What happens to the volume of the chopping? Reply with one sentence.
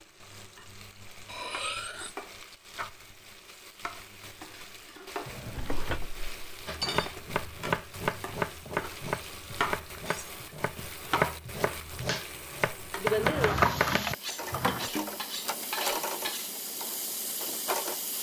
The volume of the chopping goes down, then up.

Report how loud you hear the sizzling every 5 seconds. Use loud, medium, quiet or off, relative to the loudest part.
quiet, medium, loud, loud.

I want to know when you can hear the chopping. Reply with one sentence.
The chopping can be heard from 6.7 to 14.2 s.